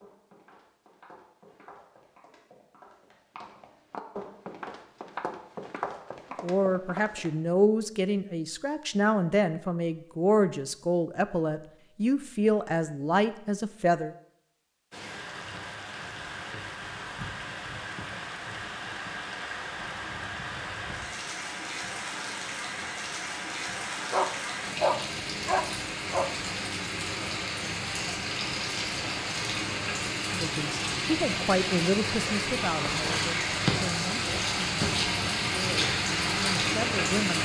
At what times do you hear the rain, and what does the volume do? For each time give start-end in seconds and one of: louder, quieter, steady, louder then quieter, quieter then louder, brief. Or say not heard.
14.9-37.3 louder.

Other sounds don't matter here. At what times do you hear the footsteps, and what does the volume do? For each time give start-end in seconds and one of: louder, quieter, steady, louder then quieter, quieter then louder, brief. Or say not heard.
0.0-7.3 louder.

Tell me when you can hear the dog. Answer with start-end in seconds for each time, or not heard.
24.1-26.4.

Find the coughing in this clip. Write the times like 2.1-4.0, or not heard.
not heard.